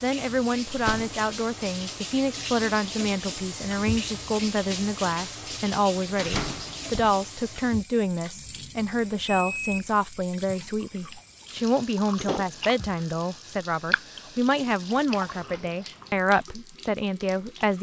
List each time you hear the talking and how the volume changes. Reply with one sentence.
The talking can be heard from 0.0 to 17.7 s, at a steady volume.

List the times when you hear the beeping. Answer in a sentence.
You can hear the beeping from 8.4 to 9.9 s.